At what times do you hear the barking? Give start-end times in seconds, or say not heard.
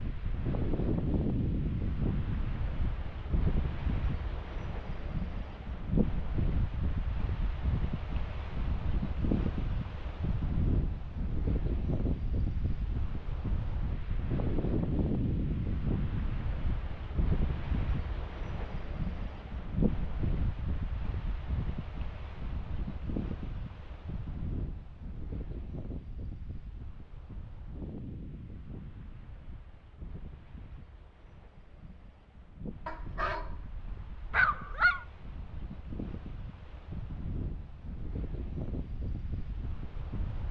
32.9-35.0.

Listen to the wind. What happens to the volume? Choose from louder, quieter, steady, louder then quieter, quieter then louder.
quieter.